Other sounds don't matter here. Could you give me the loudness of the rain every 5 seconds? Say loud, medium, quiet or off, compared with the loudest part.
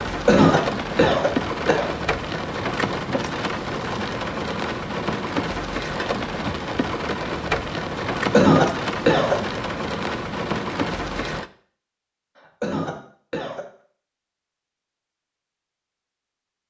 loud, loud, loud, off.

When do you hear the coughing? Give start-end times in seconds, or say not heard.
0.2-1.9, 8.3-9.3, 12.6-13.7.